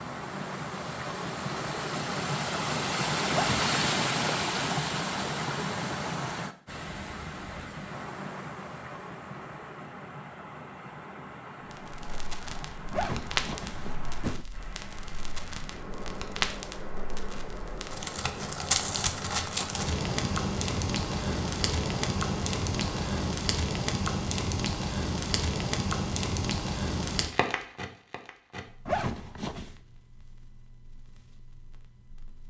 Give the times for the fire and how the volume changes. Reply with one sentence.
The fire can be heard from 11.7 to 32.4 s, getting louder then quieter.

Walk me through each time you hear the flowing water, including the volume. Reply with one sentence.
The flowing water can be heard from 0.0 to 23.3 s, getting quieter.